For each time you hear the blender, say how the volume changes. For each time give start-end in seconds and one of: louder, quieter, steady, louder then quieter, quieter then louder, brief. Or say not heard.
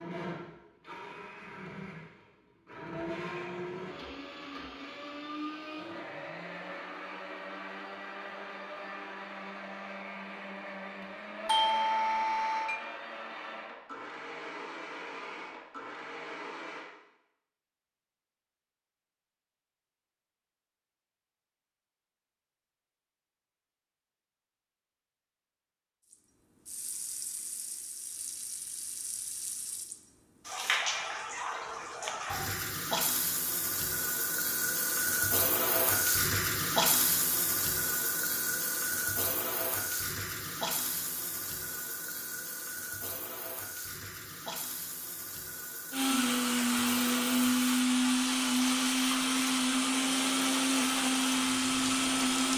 0.0-16.9 steady
45.9-52.5 steady.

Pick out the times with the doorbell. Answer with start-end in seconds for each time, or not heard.
11.4-12.8.